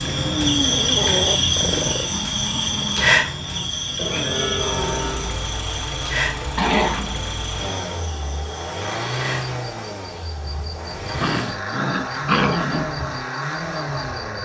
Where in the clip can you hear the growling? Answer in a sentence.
You can hear the growling from 0.6 to 2.1 s, from 6.5 to 7.2 s and from 11.2 to 12.8 s.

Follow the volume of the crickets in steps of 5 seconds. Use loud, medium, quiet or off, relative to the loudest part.
loud, medium, quiet.